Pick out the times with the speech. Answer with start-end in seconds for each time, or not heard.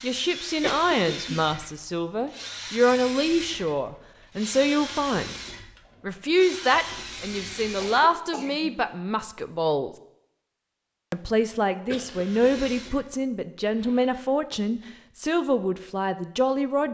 0.0-5.3, 6.0-9.9, 11.1-16.8.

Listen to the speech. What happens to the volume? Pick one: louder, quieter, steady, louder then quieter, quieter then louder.
steady.